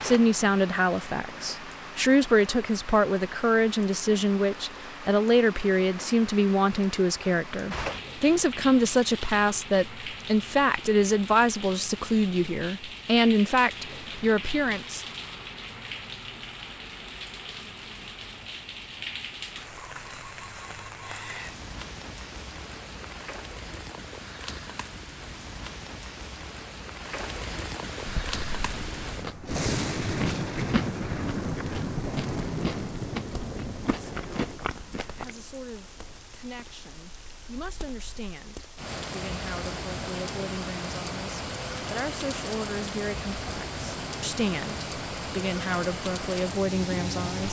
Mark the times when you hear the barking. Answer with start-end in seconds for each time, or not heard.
not heard.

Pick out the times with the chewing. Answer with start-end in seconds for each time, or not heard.
28.0-35.3.